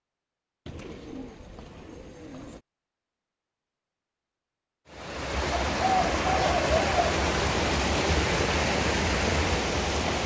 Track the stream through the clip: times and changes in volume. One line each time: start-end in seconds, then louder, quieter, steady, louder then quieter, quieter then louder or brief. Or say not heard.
4.8-10.2 steady.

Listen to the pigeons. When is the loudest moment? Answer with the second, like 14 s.
6 s.